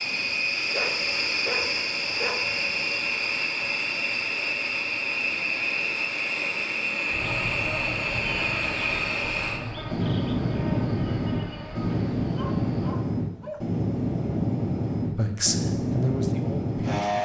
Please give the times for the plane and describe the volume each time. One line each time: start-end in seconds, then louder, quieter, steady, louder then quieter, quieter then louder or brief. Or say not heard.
0.0-17.2 steady.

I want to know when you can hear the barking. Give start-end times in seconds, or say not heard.
0.7-2.5, 12.2-13.8.